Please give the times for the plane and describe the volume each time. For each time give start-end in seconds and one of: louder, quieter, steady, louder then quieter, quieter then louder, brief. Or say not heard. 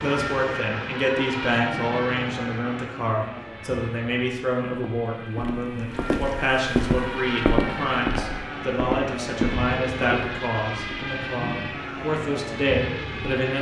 0.0-13.5 quieter then louder.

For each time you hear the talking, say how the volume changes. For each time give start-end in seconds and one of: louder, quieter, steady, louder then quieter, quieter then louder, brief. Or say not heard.
0.0-13.5 steady.